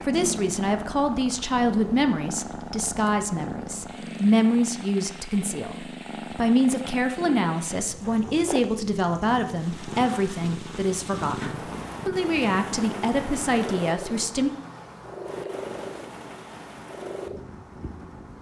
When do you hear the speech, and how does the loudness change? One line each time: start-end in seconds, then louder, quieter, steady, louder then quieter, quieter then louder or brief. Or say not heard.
0.0-14.5 steady.